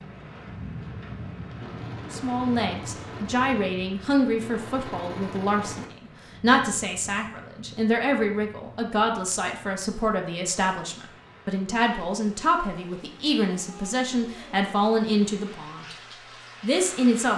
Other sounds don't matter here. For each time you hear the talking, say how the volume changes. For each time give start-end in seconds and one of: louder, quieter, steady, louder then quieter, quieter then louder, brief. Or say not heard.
2.0-15.9 steady
16.6-17.3 brief.